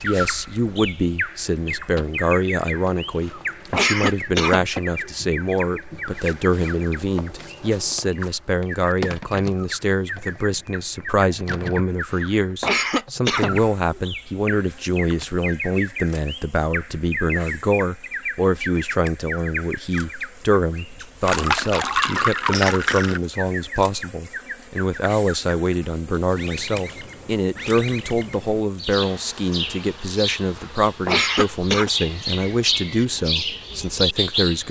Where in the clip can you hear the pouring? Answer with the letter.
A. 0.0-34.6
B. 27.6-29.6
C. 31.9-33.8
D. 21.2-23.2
D.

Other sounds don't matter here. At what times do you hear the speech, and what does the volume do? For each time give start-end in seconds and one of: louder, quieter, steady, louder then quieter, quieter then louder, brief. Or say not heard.
0.0-34.6 steady.